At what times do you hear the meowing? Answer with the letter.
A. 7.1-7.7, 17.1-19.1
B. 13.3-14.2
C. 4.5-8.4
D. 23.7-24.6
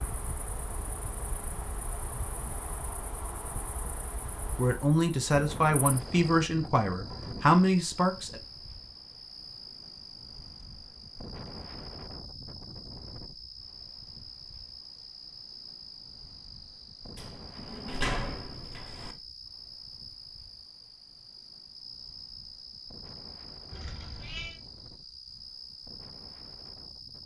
D.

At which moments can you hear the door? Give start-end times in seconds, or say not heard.
7.1-7.7, 17.1-19.1.